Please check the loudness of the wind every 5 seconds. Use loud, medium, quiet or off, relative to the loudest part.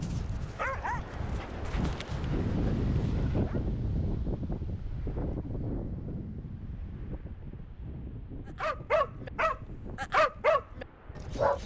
loud, medium, quiet.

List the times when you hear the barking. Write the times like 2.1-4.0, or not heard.
0.0-3.6, 8.6-11.6.